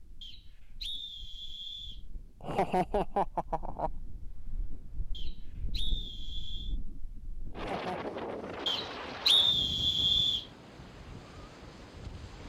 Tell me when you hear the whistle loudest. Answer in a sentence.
The loudest moment of the whistle is at 9 seconds.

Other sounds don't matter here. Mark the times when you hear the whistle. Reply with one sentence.
The whistle can be heard from 0.2 to 2.0 s, from 5.1 to 6.8 s and from 8.7 to 10.4 s.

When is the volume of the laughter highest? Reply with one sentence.
The loudest moment of the laughter is at 3 seconds.